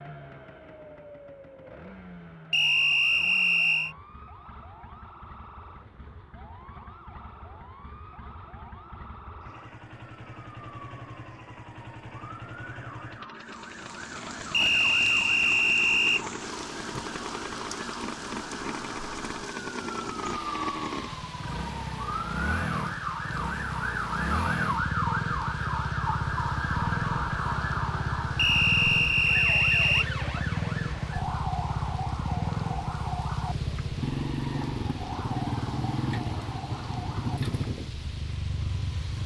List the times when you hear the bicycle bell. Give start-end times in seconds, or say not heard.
not heard.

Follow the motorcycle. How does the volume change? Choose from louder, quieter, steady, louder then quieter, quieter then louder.
louder.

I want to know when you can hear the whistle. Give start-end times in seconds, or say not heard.
2.5-4.0, 14.5-16.2, 28.4-30.1.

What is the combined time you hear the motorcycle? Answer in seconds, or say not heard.
39 s.